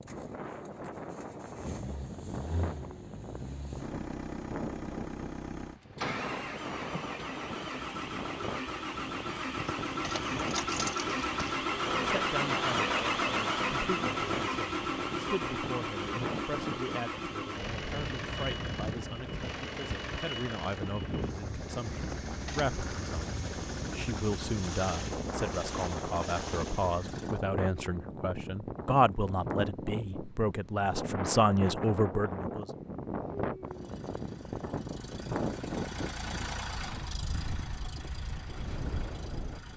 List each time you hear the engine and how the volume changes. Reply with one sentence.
The engine can be heard from 0.0 to 27.4 s, getting louder then quieter; and from 33.6 to 39.7 s, getting louder then quieter.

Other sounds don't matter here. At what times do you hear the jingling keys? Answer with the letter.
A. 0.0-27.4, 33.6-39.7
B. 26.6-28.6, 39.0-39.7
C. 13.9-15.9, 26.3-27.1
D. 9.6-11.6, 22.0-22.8
D.